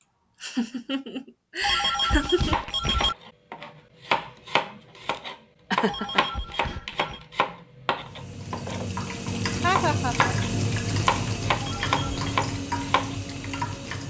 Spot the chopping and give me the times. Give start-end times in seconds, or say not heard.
2.5-13.2.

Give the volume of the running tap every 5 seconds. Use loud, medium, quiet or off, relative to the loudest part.
off, loud, loud.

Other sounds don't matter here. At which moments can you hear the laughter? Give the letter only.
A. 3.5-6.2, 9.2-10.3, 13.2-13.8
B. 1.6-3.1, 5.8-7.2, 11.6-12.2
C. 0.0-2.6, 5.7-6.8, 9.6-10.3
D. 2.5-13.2
C.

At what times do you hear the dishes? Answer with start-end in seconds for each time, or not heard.
not heard.